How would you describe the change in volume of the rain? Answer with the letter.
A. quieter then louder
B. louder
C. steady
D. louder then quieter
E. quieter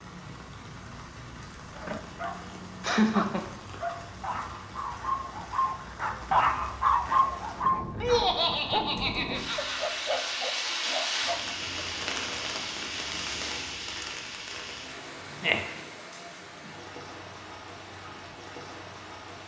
D.